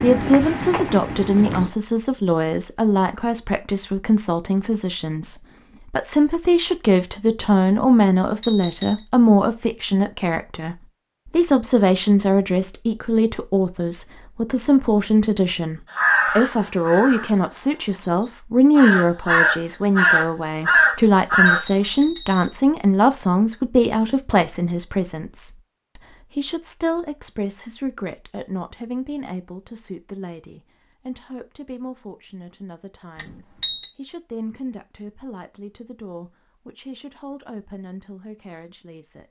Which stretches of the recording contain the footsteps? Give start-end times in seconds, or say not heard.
0.0-1.7.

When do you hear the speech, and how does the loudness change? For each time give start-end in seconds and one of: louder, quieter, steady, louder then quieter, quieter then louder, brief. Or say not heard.
0.0-39.2 quieter.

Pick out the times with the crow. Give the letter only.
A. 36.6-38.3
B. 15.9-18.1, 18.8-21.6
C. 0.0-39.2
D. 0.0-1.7
B.